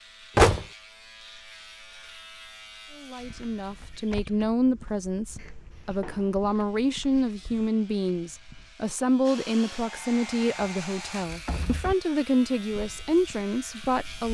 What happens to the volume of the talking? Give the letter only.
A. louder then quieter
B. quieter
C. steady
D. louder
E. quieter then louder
C.